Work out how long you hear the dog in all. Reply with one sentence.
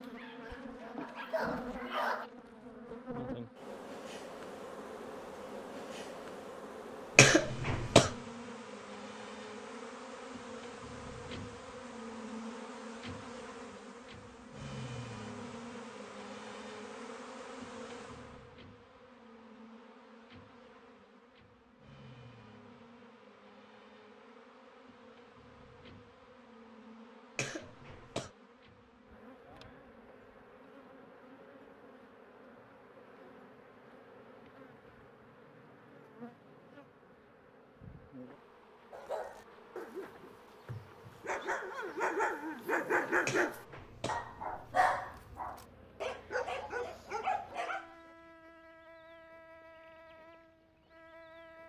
You can hear the dog for 11 seconds altogether.